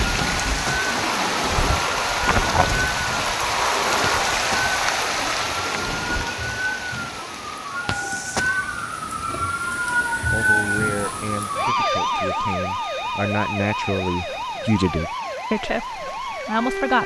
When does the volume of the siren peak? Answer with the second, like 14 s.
10 s.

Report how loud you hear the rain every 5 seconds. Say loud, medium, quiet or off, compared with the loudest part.
loud, medium, quiet, quiet.